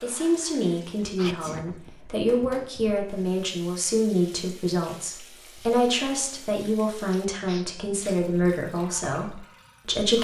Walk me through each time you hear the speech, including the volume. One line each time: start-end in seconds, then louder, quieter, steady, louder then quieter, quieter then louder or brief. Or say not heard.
0.0-10.2 steady.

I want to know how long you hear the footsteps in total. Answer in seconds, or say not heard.
not heard.